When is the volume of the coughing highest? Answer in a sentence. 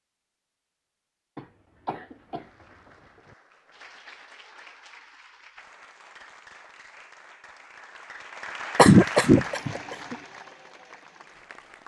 The volume of the coughing peaks at 9 seconds.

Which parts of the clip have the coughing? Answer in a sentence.
The coughing can be heard from 1.4 to 3.4 s and from 8.8 to 10.2 s.